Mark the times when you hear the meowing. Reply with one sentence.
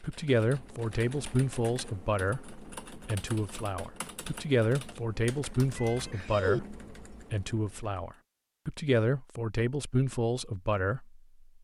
The meowing can be heard from 5.8 to 6.6 s.